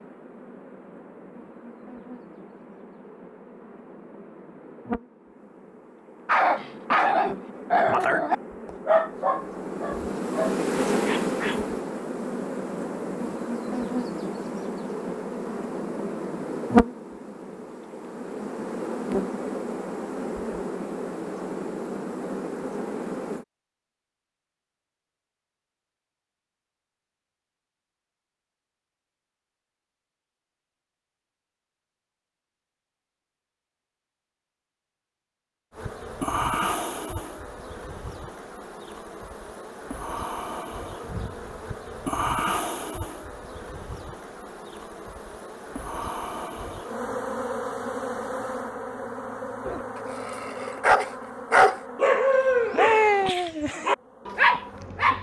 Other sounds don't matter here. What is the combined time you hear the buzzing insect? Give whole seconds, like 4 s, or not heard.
43 s.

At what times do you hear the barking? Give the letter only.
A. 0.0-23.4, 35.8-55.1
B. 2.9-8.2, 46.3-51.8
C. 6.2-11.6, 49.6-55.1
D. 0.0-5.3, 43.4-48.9
C.